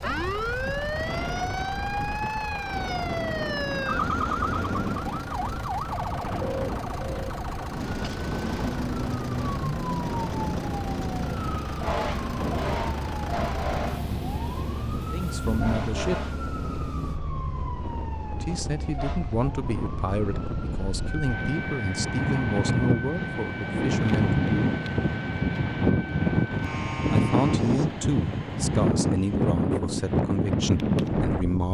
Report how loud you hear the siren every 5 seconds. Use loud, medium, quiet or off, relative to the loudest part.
loud, loud, loud, medium, medium, medium, off.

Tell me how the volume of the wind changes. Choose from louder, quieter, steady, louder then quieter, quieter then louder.
louder.